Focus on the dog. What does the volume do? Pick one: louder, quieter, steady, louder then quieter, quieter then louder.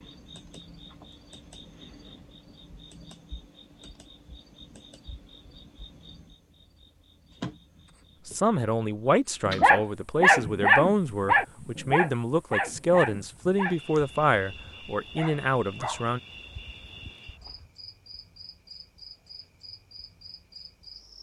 quieter.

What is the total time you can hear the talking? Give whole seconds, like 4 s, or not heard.
8 s.